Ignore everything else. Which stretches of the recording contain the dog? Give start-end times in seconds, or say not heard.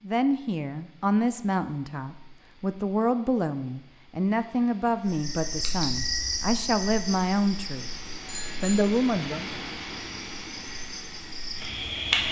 not heard.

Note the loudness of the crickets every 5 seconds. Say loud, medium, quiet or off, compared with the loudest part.
off, loud, loud.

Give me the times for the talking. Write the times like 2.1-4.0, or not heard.
0.0-7.9, 8.6-9.6.